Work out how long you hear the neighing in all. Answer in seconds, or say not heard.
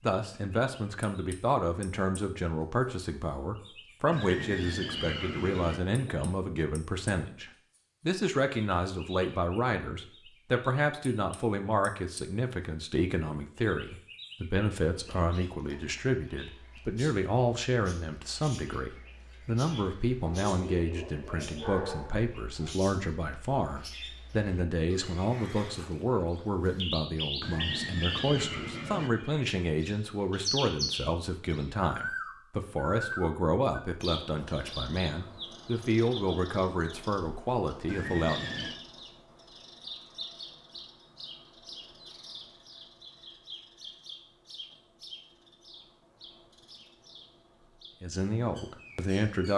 4 s.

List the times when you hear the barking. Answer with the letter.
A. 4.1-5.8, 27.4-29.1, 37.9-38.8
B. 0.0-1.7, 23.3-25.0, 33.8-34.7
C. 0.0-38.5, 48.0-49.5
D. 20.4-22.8
D.